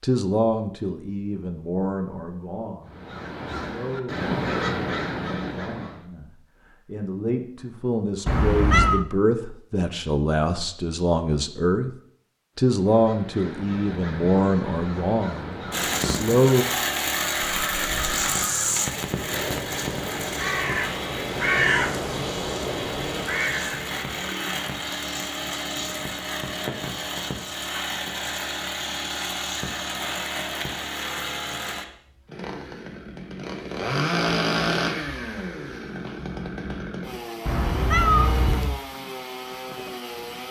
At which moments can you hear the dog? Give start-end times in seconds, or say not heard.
not heard.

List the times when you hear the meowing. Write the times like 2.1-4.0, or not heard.
8.2-9.1, 37.5-38.8.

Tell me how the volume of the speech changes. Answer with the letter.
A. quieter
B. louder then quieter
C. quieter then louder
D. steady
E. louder
C.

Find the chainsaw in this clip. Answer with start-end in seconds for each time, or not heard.
15.7-40.4.